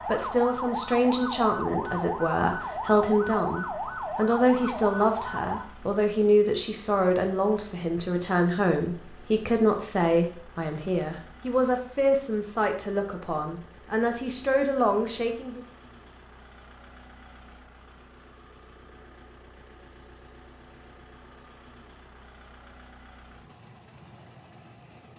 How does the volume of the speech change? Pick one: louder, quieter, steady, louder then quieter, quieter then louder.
steady.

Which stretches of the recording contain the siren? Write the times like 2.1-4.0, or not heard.
0.0-5.7.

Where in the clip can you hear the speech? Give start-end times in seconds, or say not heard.
0.1-15.7.